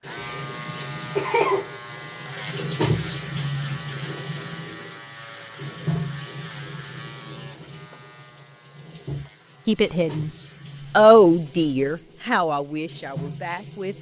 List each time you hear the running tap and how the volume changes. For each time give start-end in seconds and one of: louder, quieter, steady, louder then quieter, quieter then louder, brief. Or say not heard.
0.0-13.9 quieter.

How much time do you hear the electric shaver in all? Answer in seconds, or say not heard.
11 s.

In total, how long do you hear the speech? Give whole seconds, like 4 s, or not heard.
4 s.